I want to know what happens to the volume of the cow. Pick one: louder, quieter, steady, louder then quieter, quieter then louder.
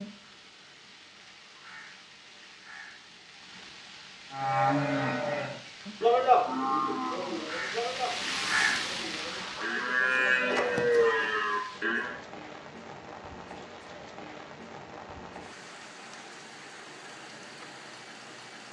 quieter then louder.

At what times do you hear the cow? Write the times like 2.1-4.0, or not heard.
4.3-12.2.